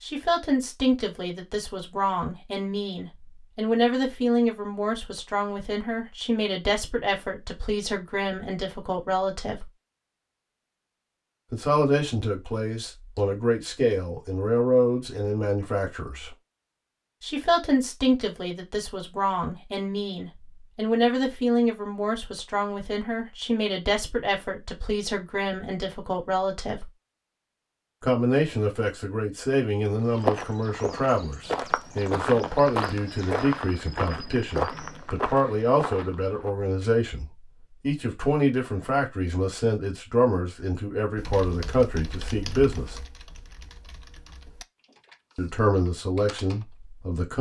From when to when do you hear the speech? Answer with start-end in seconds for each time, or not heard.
0.0-9.7, 11.5-16.4, 17.2-26.9, 28.0-43.0, 45.4-47.3.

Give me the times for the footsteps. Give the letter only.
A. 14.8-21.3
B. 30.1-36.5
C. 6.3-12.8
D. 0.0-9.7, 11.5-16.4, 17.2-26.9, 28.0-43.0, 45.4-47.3
B.